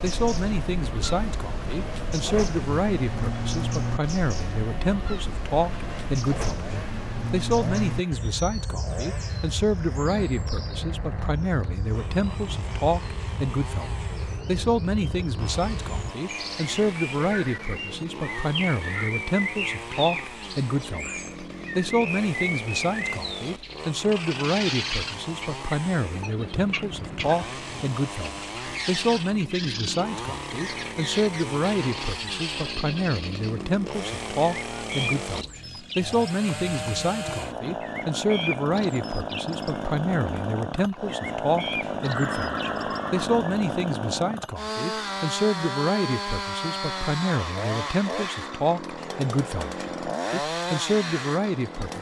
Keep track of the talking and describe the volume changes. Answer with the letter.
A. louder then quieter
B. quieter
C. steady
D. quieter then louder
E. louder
C.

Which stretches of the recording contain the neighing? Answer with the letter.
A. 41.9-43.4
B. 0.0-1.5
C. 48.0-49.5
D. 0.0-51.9
A.